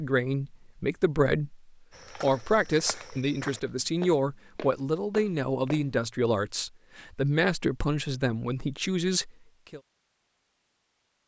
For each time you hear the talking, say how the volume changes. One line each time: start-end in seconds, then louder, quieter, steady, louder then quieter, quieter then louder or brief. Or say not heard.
0.0-9.8 steady.